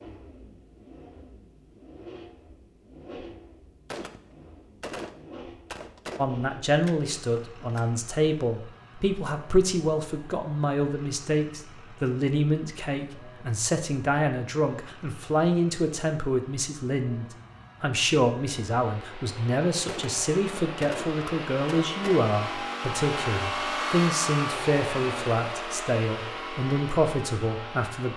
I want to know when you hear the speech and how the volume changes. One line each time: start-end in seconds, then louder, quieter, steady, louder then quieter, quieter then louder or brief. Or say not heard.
6.2-28.1 steady.